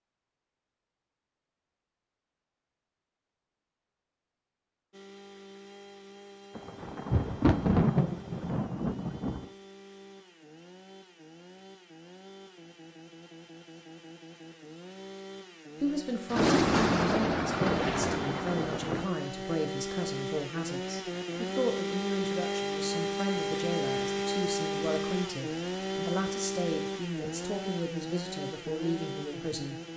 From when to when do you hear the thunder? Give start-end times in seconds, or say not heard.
6.5-9.4, 16.3-19.1.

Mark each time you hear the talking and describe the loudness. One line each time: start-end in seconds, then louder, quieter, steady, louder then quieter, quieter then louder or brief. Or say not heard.
15.8-29.8 steady.